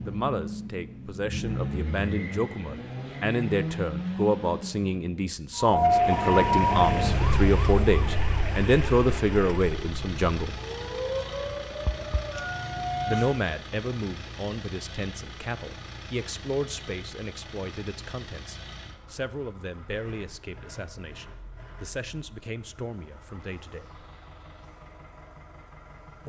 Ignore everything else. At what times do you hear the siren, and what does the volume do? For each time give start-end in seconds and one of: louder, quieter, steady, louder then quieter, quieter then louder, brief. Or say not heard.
5.5-13.4 quieter then louder.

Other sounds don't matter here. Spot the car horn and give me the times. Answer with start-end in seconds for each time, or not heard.
not heard.